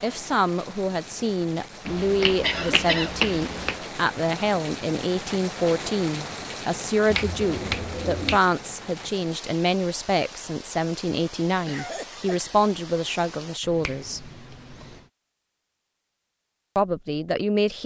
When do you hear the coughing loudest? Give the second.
3 s.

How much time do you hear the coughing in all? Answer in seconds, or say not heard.
2 s.